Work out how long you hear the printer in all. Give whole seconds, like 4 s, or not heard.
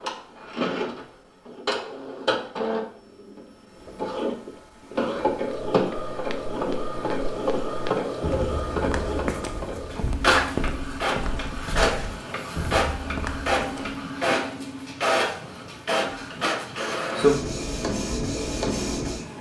19 s.